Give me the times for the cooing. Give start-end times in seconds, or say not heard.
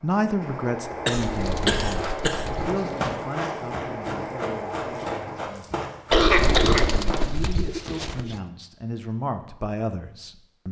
1.1-3.2, 6.1-8.4.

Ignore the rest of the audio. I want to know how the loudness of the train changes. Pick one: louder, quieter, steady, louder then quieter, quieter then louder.
steady.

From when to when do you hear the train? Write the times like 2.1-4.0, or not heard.
0.0-5.6.